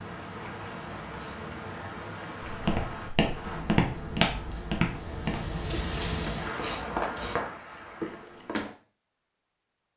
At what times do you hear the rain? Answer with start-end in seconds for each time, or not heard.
0.0-8.3.